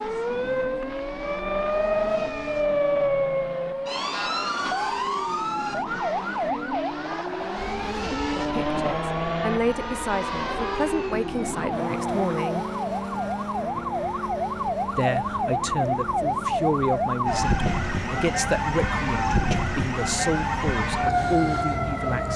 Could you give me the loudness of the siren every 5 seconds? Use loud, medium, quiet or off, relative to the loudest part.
loud, medium, medium, loud, loud.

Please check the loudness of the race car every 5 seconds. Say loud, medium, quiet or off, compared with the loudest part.
medium, loud, loud, medium, medium.